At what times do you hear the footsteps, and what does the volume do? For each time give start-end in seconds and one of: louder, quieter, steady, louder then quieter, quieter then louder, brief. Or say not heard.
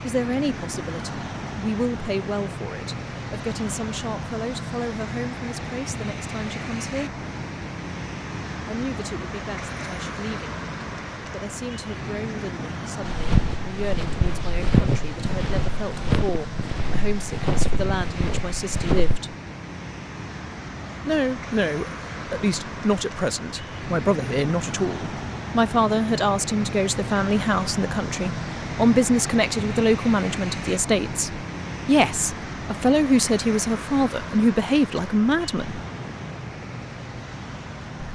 13.0-19.2 louder then quieter.